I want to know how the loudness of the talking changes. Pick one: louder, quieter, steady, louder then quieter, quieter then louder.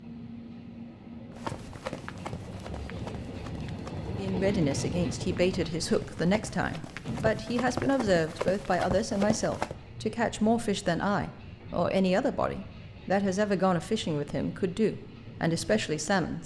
steady.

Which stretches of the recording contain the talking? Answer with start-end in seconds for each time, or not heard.
4.1-16.4.